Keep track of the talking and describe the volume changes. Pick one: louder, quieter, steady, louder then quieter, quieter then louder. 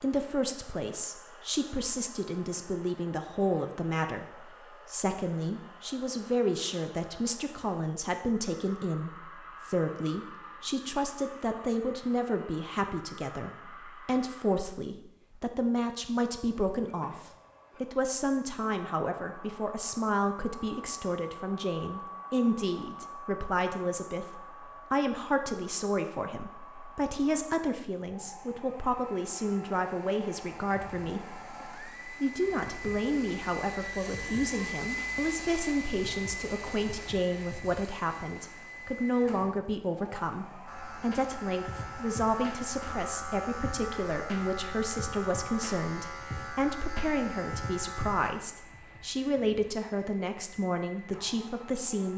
steady.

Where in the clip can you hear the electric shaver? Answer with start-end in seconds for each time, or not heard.
40.6-48.3.